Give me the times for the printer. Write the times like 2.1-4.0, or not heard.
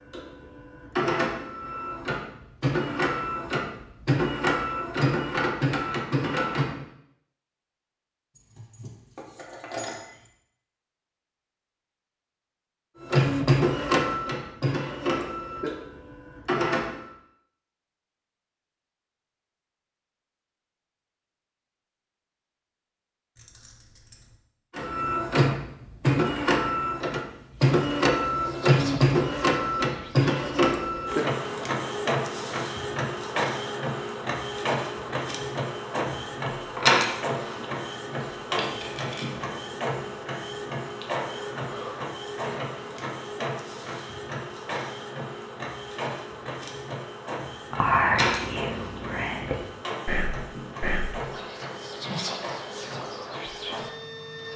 0.0-6.8, 13.0-17.1, 24.8-54.5.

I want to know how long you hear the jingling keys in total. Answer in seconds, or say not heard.
4 s.